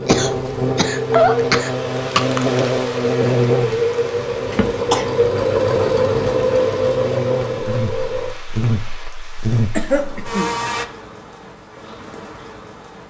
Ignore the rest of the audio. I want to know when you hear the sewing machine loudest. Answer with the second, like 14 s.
6 s.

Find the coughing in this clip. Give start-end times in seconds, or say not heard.
0.1-2.2, 4.5-5.0, 9.8-10.5.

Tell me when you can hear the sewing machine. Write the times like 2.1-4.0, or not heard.
0.0-8.3.